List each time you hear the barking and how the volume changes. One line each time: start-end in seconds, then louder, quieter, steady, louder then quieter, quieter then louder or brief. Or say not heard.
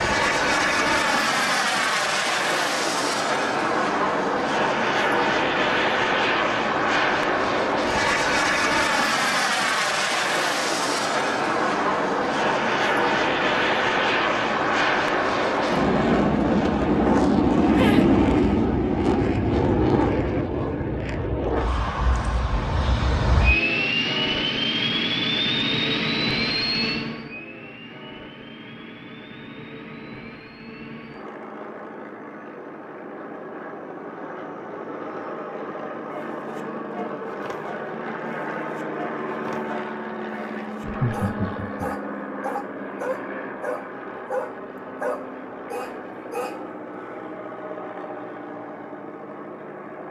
36.0-46.6 louder.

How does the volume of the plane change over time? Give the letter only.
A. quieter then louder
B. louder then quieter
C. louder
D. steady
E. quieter
E.